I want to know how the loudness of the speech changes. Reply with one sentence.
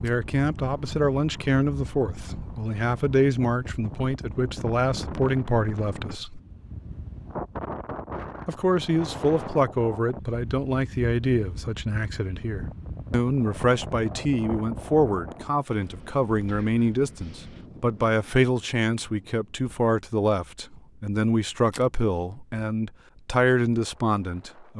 The loudness of the speech stays about the same.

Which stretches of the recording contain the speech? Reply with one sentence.
The speech can be heard from 0.0 to 6.4 s and from 8.4 to 24.7 s.